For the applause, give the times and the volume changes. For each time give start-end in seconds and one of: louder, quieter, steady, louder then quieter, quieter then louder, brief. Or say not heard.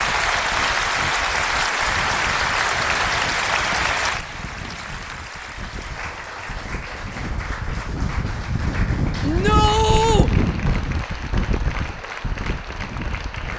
0.0-13.5 quieter.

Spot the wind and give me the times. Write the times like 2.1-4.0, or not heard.
0.0-13.5.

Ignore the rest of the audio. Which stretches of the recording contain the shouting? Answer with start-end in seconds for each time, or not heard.
9.2-10.3.